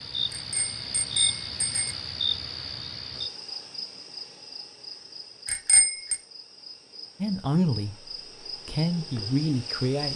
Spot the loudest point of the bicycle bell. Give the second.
6 s.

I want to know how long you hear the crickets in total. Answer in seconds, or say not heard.
10 s.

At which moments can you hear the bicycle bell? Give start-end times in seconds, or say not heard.
0.3-1.9, 5.5-6.2.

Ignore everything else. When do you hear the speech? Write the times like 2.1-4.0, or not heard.
7.2-8.0, 8.7-10.1.